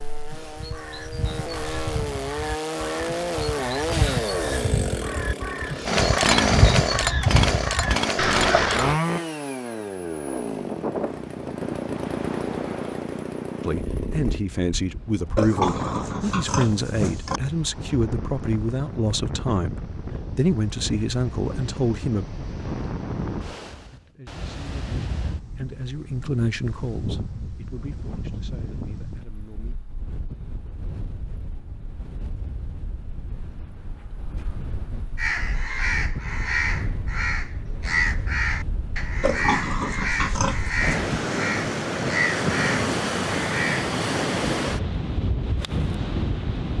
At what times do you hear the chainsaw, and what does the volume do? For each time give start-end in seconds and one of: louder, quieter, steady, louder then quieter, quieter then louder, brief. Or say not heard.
0.0-14.4 louder then quieter.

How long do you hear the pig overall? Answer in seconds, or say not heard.
4 s.